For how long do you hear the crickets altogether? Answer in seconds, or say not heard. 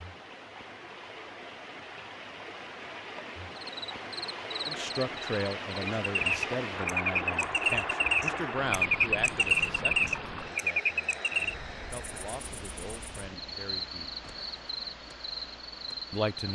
13 s.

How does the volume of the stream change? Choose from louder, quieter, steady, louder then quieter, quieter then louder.
louder then quieter.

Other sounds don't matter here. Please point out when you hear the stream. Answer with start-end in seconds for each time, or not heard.
0.0-16.5.